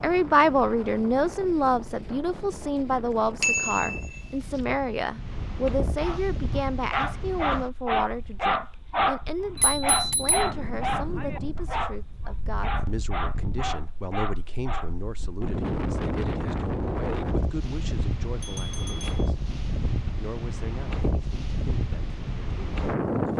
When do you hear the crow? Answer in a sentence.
The crow can't be heard in this clip.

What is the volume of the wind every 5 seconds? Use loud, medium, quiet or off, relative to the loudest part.
medium, medium, medium, loud, loud.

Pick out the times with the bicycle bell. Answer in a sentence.
The bicycle bell can be heard from 3.4 to 4.2 s, from 9.6 to 10.5 s and from 18.4 to 19.3 s.